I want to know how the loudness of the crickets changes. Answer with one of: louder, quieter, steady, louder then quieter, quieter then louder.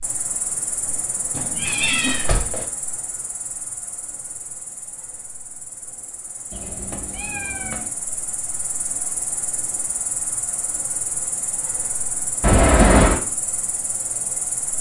quieter then louder.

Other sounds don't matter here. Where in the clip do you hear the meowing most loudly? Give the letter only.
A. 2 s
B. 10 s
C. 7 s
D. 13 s
D.